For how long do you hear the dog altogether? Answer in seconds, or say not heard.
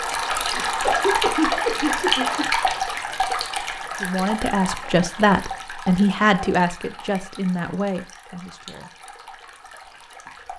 not heard.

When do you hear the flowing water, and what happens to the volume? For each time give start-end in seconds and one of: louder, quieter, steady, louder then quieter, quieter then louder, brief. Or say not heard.
0.0-10.5 quieter.